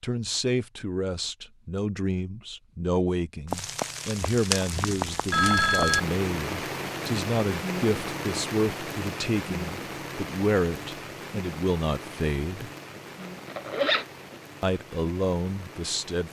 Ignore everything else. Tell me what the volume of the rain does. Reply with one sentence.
The volume of the rain goes down.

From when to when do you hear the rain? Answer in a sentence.
The rain can be heard from 3.5 to 16.2 s.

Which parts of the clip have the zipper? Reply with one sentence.
You can hear the zipper from 12.9 to 14.3 s.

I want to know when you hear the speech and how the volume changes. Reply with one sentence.
You can hear the speech from 0.0 to 12.7 s, at a steady volume; and briefly from 14.6 to 16.2 s.